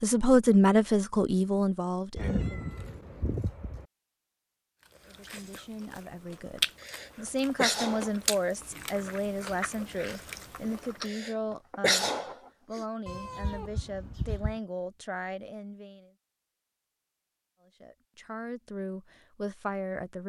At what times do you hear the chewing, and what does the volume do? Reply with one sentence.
You can hear the chewing from 4.8 to 11.1 s, getting louder then quieter.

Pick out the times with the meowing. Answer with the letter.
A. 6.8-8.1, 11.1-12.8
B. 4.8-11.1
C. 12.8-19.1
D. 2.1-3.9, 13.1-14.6
D.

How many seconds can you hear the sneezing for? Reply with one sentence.
You can hear the sneezing for 3 seconds altogether.